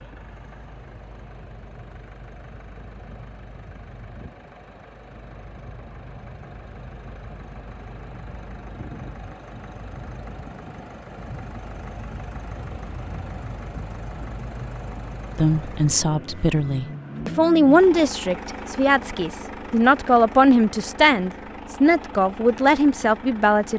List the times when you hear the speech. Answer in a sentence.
You can hear the speech from 15.3 to 23.7 s.